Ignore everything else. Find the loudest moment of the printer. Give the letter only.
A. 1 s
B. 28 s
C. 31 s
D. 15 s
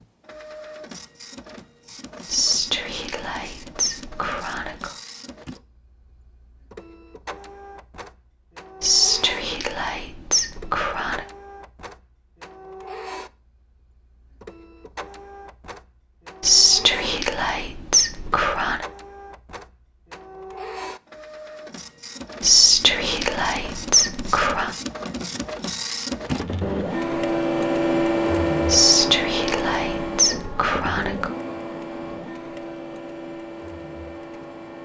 B.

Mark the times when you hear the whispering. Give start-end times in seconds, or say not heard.
2.2-4.9, 8.8-11.2, 16.4-18.9, 22.4-24.7, 28.6-31.3.